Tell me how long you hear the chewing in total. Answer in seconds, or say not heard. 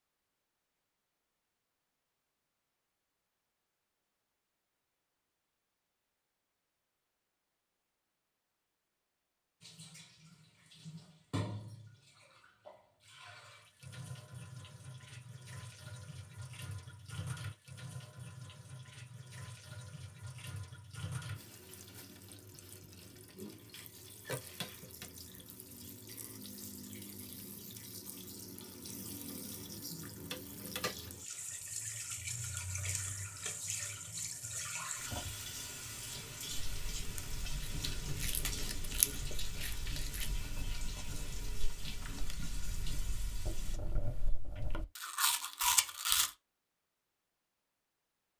10 s.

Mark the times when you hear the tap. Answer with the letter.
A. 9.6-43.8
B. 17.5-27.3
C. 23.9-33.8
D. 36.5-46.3
A.